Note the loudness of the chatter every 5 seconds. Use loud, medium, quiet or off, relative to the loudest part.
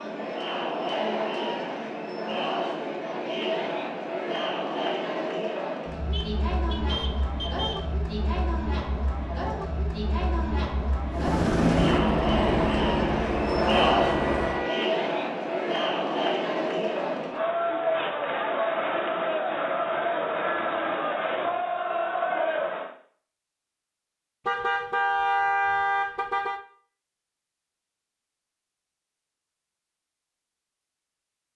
loud, medium, loud, loud, loud, off, off.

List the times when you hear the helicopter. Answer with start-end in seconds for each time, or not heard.
11.1-14.7.